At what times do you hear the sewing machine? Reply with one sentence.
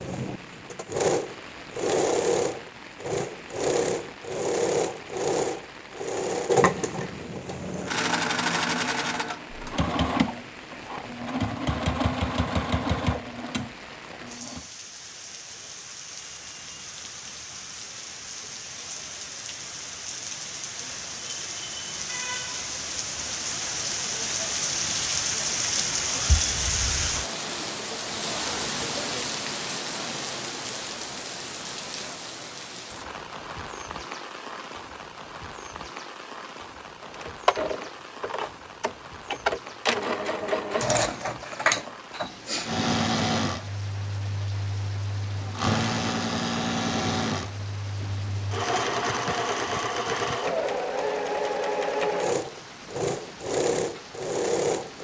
You can hear the sewing machine from 0.0 to 14.7 s and from 37.0 to 54.9 s.